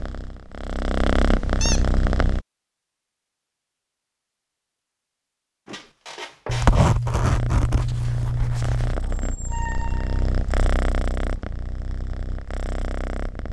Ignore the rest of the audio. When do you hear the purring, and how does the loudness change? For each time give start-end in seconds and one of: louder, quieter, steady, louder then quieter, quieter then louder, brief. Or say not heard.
0.0-2.4 brief
7.2-13.4 louder then quieter.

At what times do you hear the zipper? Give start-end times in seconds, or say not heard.
6.5-8.9.